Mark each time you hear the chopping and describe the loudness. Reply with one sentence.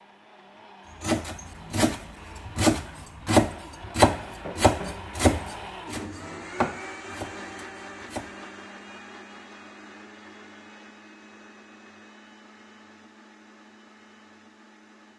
You can hear the chopping from 1.0 to 8.3 s, getting quieter.